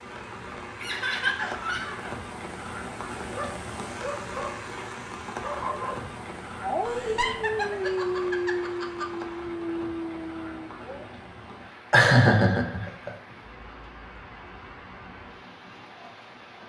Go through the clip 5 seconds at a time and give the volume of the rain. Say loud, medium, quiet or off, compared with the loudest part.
loud, loud, medium, medium.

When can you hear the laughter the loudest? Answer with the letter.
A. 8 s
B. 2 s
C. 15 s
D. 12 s
D.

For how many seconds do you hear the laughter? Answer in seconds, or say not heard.
5 s.